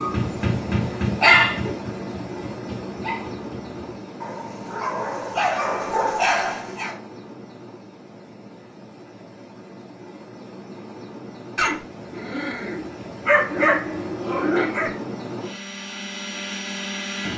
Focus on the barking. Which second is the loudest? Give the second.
1 s.